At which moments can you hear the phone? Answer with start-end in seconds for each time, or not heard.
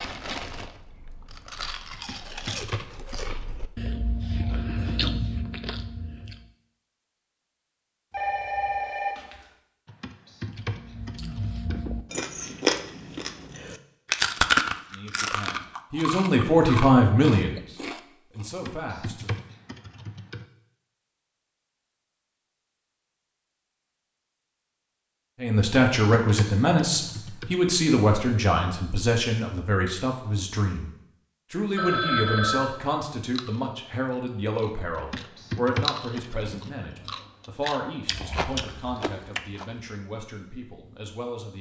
8.1-9.4, 31.8-32.7.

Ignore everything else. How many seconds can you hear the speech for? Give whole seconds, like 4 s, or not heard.
20 s.